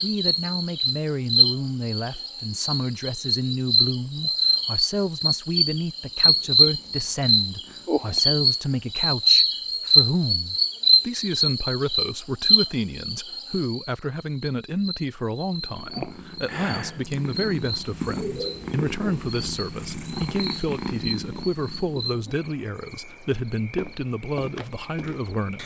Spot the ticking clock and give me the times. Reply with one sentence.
The ticking clock can't be heard in this clip.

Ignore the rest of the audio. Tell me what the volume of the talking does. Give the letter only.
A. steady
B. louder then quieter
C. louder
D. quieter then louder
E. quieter
A.